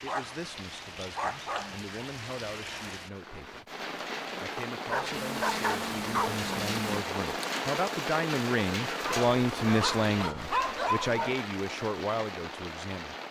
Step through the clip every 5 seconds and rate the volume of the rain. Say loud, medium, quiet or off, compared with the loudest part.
medium, loud, medium.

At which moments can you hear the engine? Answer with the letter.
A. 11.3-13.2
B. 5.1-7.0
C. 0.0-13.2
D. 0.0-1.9
B.